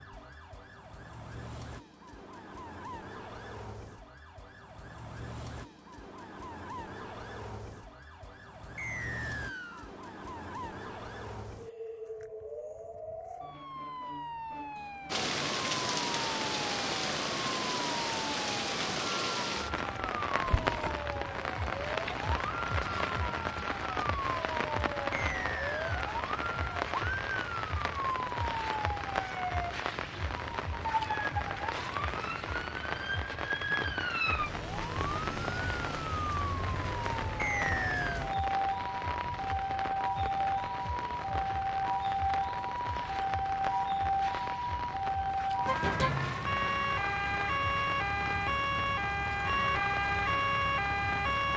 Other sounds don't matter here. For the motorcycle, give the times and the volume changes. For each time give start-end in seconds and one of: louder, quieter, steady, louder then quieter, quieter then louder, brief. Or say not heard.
not heard.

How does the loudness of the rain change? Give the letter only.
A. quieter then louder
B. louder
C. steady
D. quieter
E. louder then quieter
D.